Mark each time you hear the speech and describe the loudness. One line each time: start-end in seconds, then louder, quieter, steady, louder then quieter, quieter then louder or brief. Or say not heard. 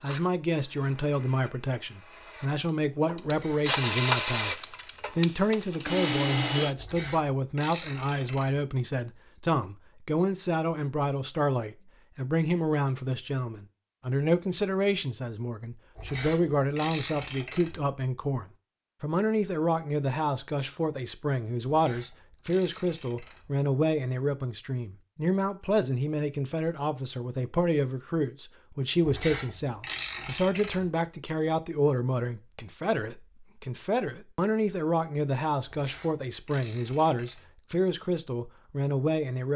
0.0-39.5 steady.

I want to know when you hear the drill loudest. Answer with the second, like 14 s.
4 s.